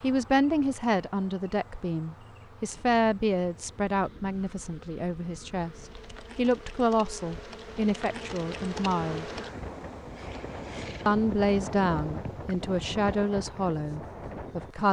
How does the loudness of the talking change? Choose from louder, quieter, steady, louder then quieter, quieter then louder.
steady.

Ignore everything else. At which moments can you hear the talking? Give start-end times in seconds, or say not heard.
0.0-9.3, 11.1-14.8.